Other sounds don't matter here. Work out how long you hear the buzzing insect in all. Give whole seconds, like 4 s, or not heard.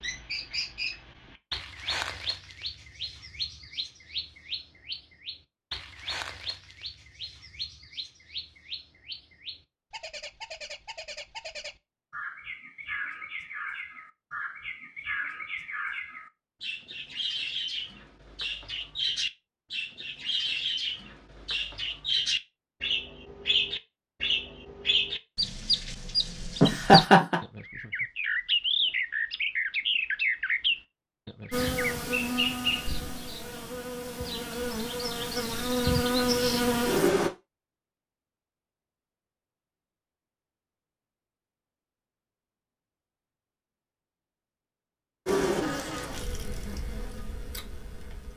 9 s.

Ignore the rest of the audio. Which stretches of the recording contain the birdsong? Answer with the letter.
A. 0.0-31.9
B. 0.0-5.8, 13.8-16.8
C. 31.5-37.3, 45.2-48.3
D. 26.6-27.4
A.